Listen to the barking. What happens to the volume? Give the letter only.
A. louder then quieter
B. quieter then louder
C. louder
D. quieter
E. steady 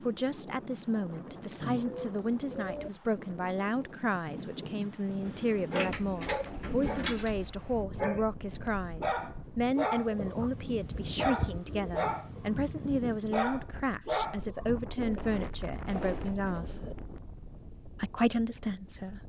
E.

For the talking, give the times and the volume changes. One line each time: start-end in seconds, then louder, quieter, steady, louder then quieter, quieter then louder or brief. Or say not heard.
0.0-16.8 steady
17.9-19.2 brief.